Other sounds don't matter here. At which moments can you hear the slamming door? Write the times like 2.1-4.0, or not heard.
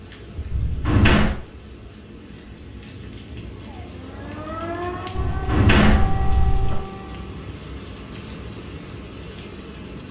0.5-1.4, 5.2-6.8.